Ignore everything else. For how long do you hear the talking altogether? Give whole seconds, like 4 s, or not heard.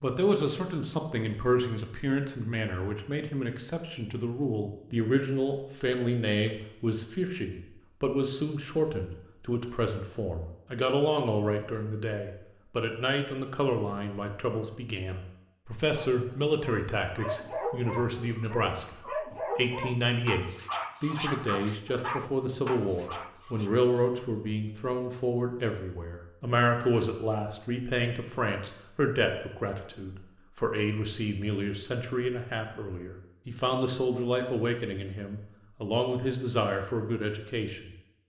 37 s.